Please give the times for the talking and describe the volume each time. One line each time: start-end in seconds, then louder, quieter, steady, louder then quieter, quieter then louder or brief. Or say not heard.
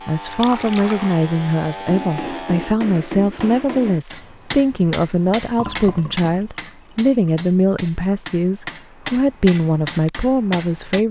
0.1-11.0 steady.